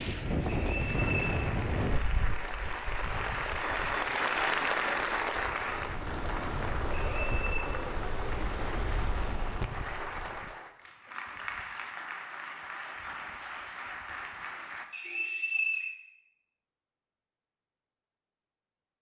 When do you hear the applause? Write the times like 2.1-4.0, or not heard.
0.0-14.8.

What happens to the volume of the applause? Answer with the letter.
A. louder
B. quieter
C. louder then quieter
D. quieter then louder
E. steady
C.